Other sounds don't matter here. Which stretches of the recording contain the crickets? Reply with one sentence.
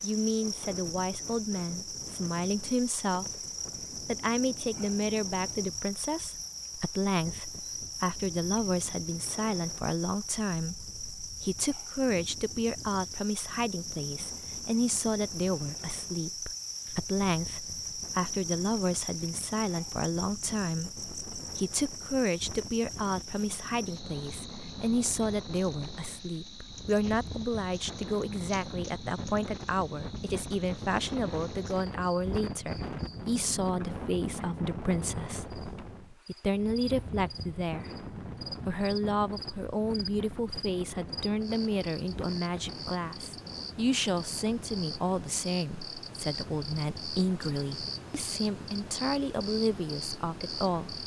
The crickets can be heard from 0.0 to 51.0 s.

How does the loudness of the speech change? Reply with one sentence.
The volume of the speech stays about the same.